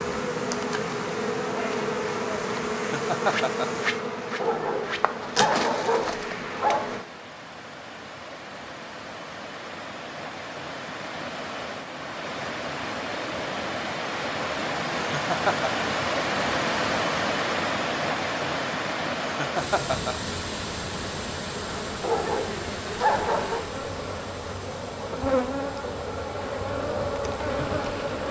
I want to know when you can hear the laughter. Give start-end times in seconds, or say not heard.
2.8-3.6, 15.1-15.8, 19.2-20.1.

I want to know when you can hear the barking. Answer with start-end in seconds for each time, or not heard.
4.4-7.0, 22.0-23.6.